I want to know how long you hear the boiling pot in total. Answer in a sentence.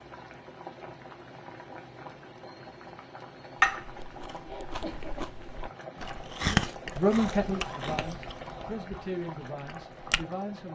You can hear the boiling pot for 11 seconds altogether.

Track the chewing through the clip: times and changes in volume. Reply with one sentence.
You can hear the chewing from 3.6 to 10.2 s, getting louder then quieter.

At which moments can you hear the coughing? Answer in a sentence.
The coughing can be heard from 4.2 to 5.3 s.